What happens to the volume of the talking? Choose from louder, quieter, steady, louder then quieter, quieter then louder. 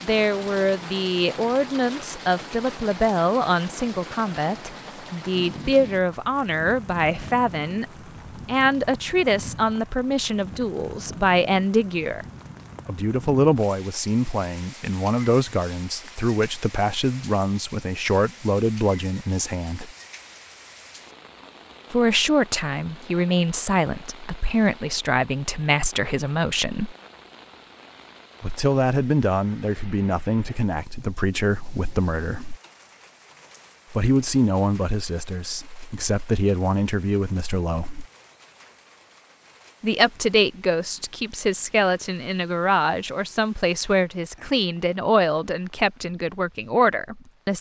steady.